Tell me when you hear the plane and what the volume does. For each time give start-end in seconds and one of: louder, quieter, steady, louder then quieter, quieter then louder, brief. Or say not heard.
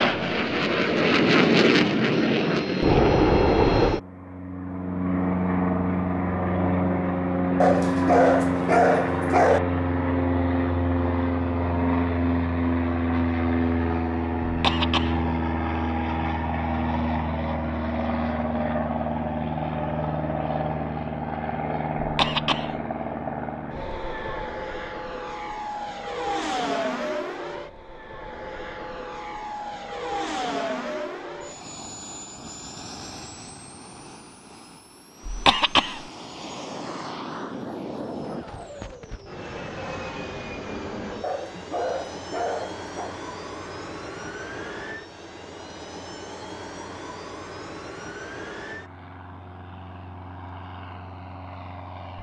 0.0-52.1 quieter.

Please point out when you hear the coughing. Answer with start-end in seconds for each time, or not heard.
14.4-15.2, 21.9-22.8, 35.2-36.0.